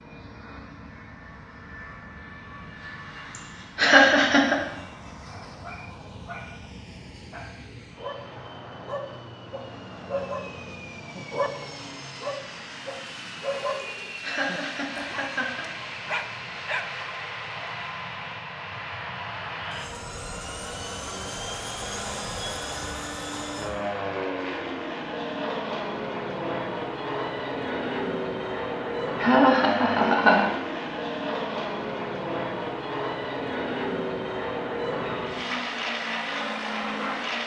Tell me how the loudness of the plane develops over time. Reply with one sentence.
The volume of the plane goes up.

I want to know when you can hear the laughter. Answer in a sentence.
The laughter can be heard from 3.8 to 4.5 s, from 14.2 to 15.7 s and from 29.2 to 30.5 s.